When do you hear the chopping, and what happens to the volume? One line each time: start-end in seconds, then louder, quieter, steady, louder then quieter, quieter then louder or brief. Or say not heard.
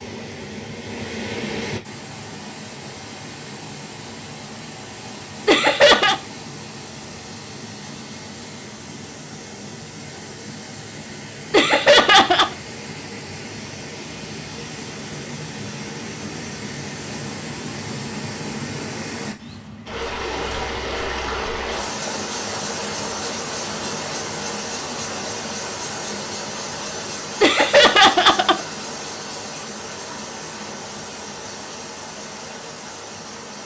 not heard.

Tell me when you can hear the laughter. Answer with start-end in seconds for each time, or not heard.
5.5-6.2, 11.5-12.6, 27.4-28.6.